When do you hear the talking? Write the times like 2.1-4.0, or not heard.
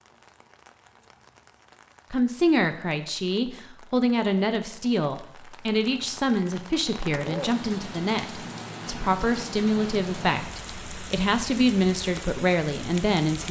2.1-13.4.